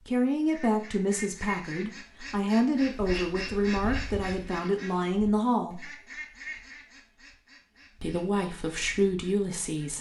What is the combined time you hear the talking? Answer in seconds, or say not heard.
8 s.